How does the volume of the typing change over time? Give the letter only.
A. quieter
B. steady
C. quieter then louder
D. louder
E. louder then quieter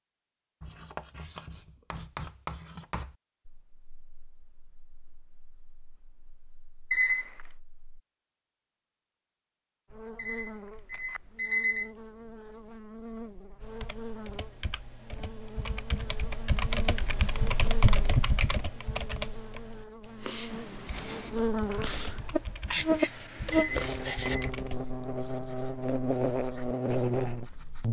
E.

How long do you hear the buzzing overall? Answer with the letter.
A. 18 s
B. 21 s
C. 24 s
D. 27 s
A.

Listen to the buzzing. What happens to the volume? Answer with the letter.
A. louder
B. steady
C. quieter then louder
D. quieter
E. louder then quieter
A.